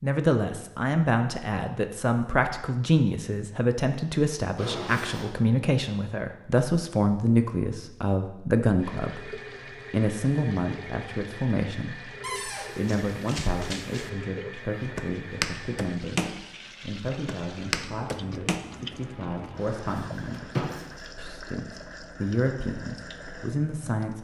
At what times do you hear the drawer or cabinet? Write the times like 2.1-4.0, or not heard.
4.5-5.3, 12.2-12.8, 19.6-20.9.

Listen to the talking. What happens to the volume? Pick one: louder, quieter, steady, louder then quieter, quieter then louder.
quieter.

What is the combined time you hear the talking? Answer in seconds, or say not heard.
24 s.